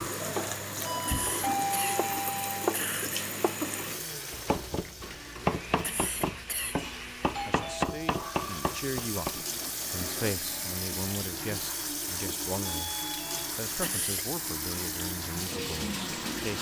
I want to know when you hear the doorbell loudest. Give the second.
2 s.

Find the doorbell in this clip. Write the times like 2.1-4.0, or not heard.
0.8-2.8, 7.3-8.2, 12.7-13.6.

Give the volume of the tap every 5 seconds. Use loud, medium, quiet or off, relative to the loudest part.
loud, medium, loud, loud.